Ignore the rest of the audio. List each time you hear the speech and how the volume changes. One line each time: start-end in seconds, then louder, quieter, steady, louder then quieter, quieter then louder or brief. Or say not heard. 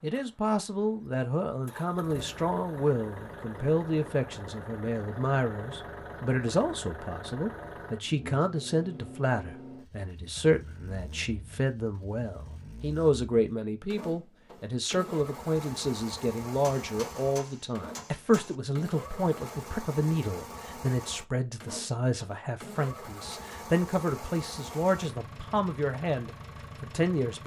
0.0-27.4 steady.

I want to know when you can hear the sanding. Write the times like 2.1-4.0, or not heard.
not heard.